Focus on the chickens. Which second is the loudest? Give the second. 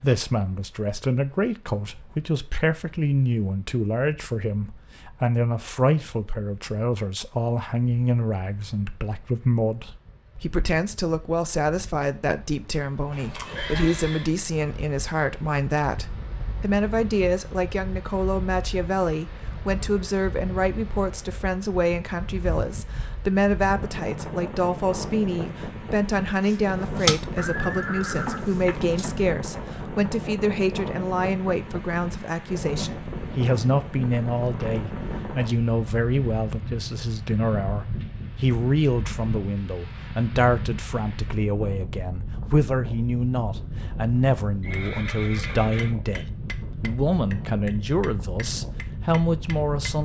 27 s.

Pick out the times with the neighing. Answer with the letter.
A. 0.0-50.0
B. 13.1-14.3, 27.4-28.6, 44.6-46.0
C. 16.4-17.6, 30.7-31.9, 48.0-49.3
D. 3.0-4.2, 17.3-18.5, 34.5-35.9
B.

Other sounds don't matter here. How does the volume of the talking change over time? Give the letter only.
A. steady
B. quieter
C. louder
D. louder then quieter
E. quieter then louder
A.